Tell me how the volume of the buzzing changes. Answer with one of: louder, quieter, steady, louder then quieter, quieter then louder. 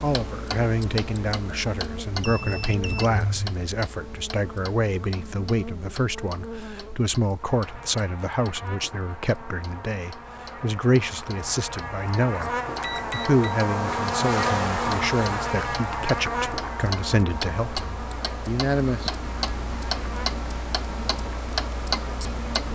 louder then quieter.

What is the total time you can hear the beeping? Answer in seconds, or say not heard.
2 s.